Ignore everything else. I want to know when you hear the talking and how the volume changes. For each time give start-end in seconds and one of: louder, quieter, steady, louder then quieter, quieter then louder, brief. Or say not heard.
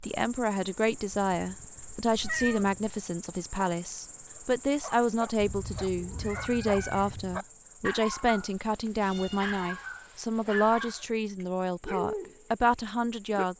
0.0-13.5 steady.